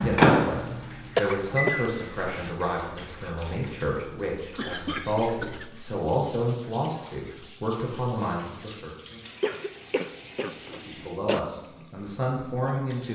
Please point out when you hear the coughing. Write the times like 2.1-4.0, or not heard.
1.1-2.5, 4.5-5.8, 9.4-11.4.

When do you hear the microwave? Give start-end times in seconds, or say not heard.
0.0-1.7.